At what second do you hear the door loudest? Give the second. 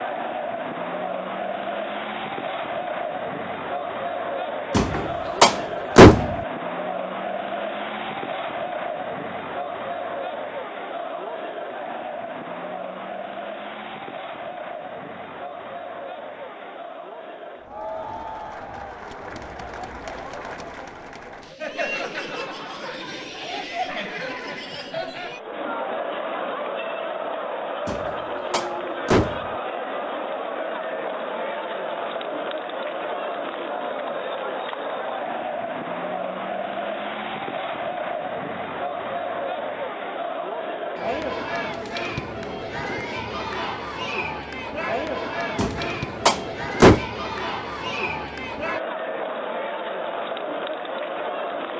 6 s.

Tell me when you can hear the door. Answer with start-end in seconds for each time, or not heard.
4.7-6.3, 27.9-29.4, 45.5-47.0.